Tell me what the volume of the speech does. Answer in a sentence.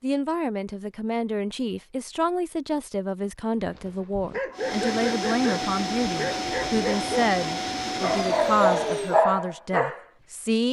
The loudness of the speech stays about the same.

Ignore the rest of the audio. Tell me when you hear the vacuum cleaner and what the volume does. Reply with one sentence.
You can hear the vacuum cleaner from 4.5 to 9.2 s, at a steady volume.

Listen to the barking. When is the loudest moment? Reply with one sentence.
The loudest moment of the barking is at 9 seconds.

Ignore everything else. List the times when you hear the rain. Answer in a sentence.
The rain can't be heard in this clip.